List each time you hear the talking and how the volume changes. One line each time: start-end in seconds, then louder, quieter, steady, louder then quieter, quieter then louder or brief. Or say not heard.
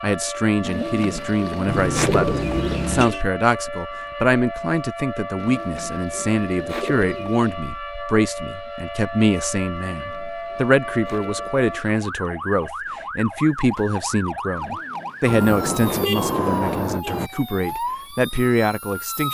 0.0-19.2 steady.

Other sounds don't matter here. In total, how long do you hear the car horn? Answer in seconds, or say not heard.
4 s.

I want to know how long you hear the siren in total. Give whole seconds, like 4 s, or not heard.
19 s.